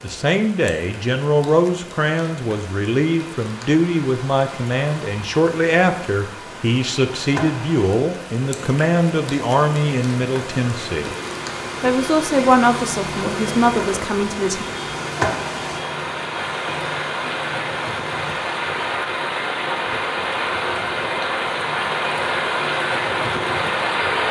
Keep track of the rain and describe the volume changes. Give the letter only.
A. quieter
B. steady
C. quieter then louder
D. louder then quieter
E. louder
E.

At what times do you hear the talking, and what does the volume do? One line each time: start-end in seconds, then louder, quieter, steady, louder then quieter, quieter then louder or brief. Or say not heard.
0.0-11.2 steady
11.8-14.7 brief.